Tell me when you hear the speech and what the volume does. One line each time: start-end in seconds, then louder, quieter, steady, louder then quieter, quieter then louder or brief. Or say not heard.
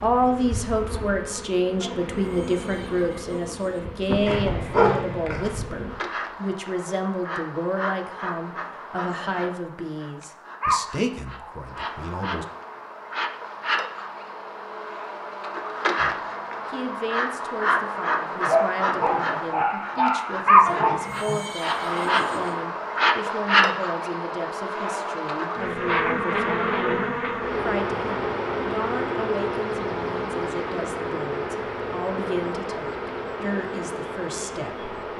0.0-12.4 quieter
15.9-34.9 steady.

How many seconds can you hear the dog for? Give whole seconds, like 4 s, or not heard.
4 s.